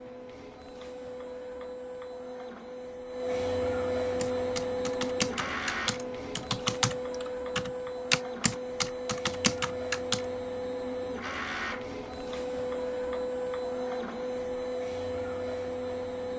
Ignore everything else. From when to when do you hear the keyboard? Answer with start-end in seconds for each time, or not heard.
4.2-10.2.